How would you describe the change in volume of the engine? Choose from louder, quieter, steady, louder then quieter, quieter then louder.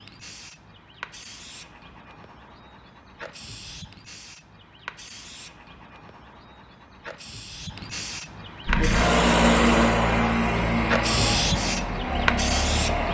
quieter.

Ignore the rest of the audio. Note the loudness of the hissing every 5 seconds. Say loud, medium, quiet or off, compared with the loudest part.
quiet, medium, loud.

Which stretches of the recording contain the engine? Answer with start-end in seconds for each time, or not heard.
8.7-13.1.